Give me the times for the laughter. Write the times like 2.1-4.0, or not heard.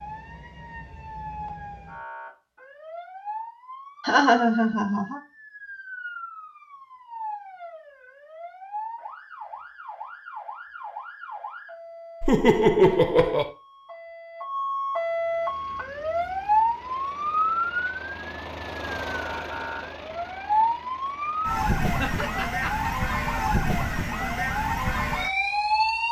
4.0-5.2, 12.2-13.5, 21.9-22.9.